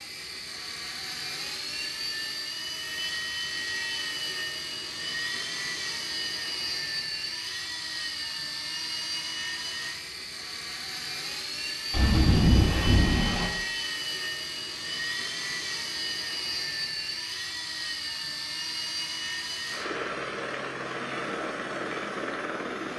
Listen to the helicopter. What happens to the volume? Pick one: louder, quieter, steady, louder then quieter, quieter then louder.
steady.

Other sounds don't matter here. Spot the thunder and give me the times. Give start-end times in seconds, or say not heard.
11.9-13.5.